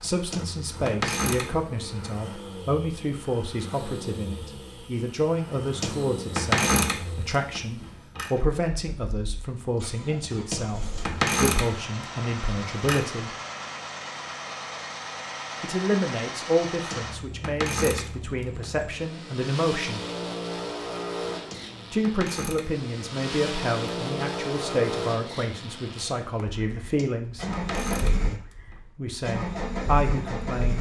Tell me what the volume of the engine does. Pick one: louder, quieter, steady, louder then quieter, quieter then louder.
louder.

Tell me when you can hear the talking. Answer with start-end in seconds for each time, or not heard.
0.0-13.3, 15.6-20.0, 21.9-27.4, 28.8-30.7.